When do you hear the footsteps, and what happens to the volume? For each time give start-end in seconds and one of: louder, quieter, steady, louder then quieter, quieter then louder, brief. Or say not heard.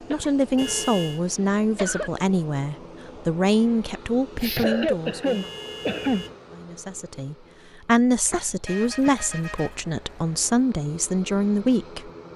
not heard.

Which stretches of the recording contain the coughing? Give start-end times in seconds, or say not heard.
0.1-2.1, 4.3-6.2, 8.2-9.1.